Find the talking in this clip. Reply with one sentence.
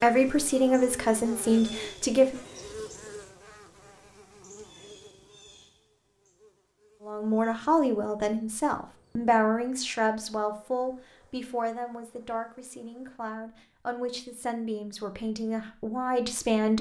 The talking can be heard from 0.0 to 2.5 s and from 7.0 to 16.7 s.